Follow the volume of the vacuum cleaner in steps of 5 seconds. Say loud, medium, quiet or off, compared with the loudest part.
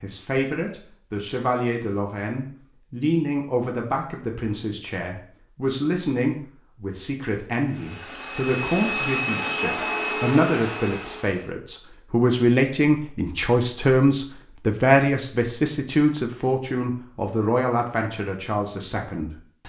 off, loud, loud, off.